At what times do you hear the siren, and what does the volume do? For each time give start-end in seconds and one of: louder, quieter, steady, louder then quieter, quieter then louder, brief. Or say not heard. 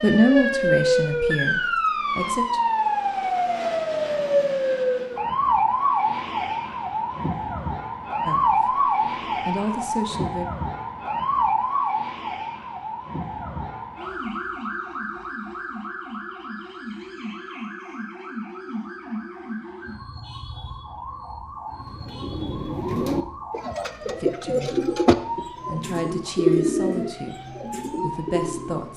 0.0-28.9 quieter.